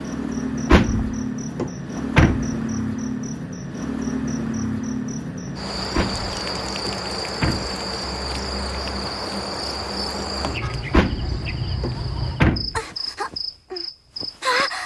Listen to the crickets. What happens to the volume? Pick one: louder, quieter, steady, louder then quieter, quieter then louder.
steady.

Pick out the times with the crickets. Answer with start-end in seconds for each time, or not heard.
0.0-14.8.